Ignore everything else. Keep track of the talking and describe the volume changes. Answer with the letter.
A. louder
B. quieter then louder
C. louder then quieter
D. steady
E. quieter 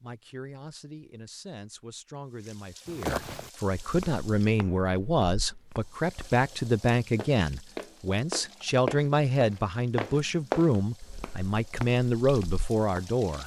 A.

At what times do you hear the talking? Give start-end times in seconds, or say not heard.
0.0-13.4.